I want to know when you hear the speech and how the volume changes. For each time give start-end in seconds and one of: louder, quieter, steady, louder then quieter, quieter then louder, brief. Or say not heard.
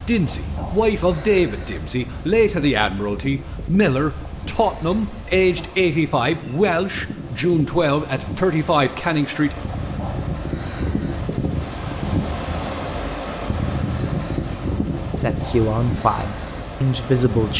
0.0-9.6 steady
15.2-17.5 brief.